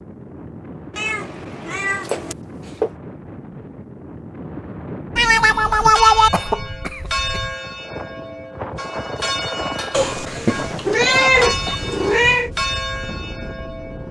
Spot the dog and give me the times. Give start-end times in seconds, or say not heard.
not heard.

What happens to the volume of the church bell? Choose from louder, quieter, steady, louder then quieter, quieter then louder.
quieter then louder.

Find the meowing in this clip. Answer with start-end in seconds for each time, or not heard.
0.9-2.4, 5.2-6.3, 9.9-12.5.